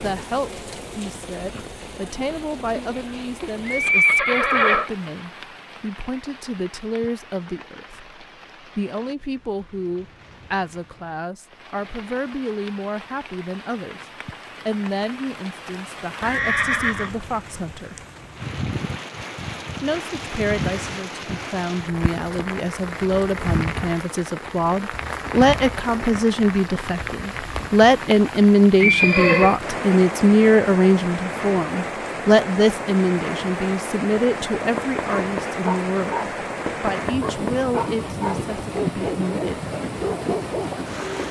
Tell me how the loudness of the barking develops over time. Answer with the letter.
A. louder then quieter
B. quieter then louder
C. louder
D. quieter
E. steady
E.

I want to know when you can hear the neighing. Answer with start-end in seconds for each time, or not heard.
2.3-4.9, 16.2-17.1, 28.8-29.6.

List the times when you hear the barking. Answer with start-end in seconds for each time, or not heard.
34.5-40.7.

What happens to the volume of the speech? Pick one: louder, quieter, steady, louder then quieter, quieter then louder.
louder then quieter.